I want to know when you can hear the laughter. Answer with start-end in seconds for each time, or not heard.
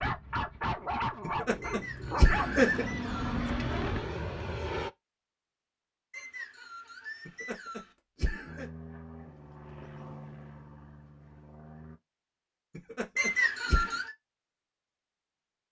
1.2-2.9, 7.2-8.7, 12.8-13.9.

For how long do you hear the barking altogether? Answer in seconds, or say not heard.
4 s.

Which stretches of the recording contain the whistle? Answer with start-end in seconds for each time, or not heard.
1.6-3.4, 6.1-8.0, 13.2-14.1.